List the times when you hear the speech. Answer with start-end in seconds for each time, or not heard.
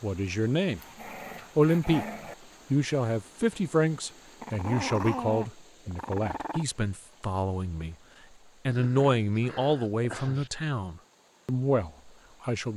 0.0-0.8, 1.6-2.0, 2.7-8.0, 8.7-12.7.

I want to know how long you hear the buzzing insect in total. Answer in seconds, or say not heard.
not heard.